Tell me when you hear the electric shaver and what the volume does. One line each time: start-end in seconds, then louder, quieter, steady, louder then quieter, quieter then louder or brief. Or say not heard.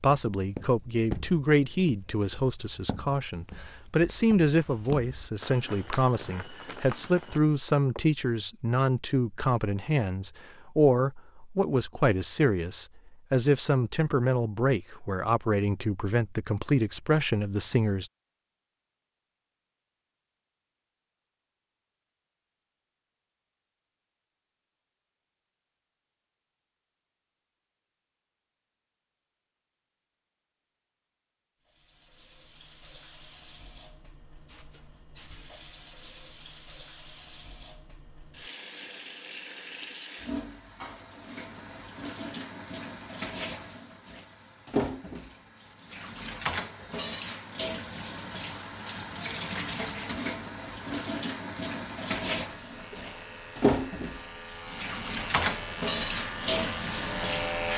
52.4-57.7 louder.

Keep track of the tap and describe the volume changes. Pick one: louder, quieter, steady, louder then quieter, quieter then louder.
louder.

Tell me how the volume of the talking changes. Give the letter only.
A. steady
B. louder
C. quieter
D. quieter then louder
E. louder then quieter
A.